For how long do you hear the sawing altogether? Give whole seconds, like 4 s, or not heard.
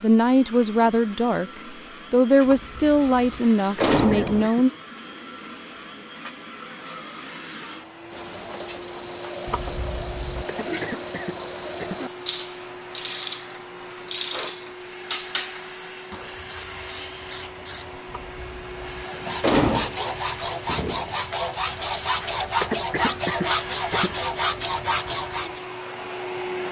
7 s.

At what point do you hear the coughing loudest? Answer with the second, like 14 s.
23 s.